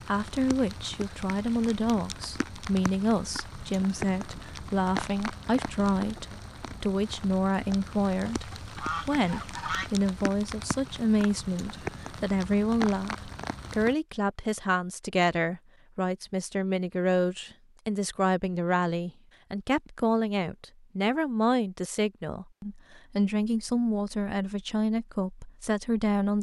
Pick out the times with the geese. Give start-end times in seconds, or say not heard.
8.2-9.9.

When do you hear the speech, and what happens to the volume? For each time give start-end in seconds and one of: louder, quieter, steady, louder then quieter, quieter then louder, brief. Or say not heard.
0.1-26.3 steady.